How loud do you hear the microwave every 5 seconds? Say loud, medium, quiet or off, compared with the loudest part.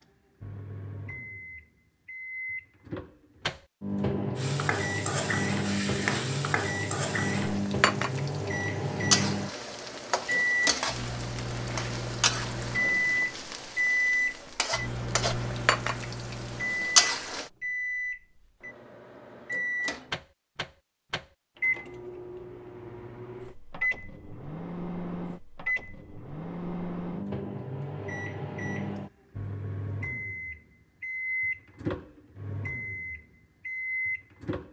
medium, loud, loud, medium, medium, medium, medium.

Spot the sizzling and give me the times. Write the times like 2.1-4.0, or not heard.
4.3-17.4.